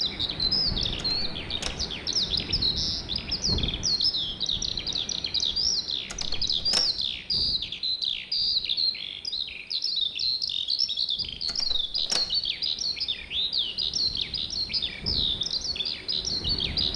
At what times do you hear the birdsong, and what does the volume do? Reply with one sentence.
The birdsong can be heard from 0.0 to 16.9 s, at a steady volume.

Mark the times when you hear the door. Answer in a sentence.
The door can be heard from 0.9 to 1.9 s, from 6.0 to 7.0 s and from 11.4 to 12.3 s.